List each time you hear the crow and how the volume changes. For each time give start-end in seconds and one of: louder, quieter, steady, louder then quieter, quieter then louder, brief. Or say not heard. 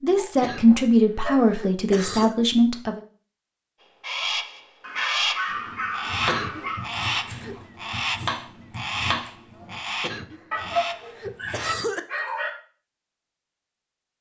4.0-11.8 quieter.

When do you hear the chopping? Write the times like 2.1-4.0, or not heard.
5.5-11.8.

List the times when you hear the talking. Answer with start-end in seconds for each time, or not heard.
0.0-3.0.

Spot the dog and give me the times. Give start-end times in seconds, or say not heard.
0.1-1.4, 4.8-6.9, 10.5-12.5.